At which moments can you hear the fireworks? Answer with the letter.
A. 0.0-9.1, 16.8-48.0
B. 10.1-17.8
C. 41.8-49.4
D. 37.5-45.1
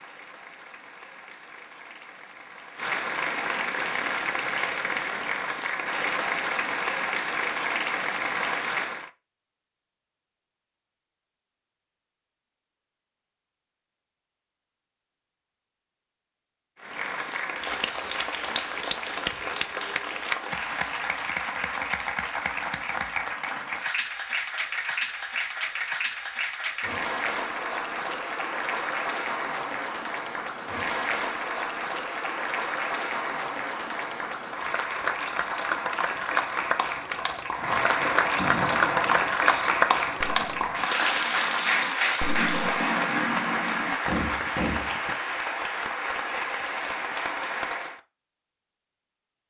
D.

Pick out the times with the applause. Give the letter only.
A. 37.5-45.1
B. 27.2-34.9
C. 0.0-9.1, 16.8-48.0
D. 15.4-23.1
C.